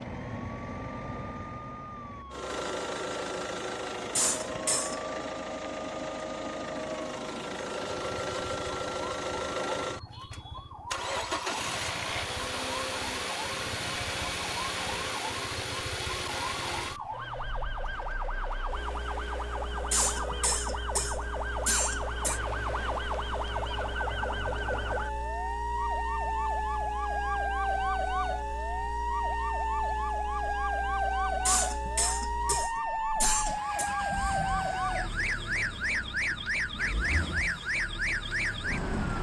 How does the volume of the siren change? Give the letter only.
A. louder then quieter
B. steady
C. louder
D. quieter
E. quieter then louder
C.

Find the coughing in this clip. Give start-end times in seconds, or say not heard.
4.2-5.0, 19.9-22.4, 31.4-33.9.